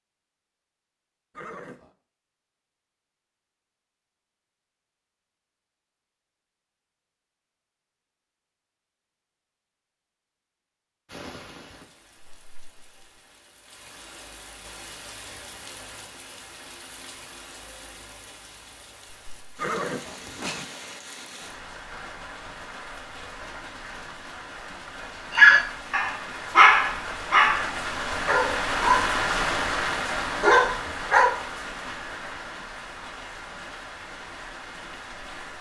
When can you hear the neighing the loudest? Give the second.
20 s.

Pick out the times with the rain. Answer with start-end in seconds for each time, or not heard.
11.1-35.5.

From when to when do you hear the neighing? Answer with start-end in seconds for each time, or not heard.
1.4-1.9, 19.6-20.6.